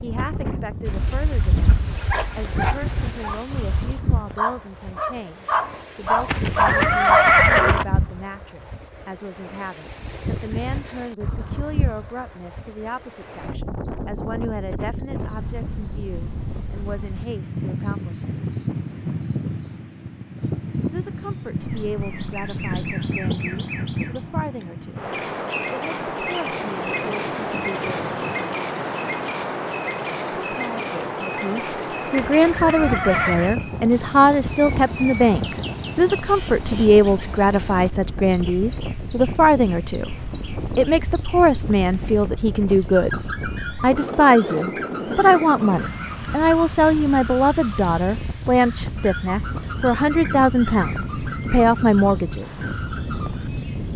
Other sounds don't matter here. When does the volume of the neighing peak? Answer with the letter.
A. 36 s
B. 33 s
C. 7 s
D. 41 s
C.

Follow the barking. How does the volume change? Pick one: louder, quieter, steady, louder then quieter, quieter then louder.
louder.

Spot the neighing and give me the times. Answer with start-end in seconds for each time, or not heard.
6.2-7.8, 32.1-33.5.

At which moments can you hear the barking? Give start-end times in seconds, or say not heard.
0.8-7.3.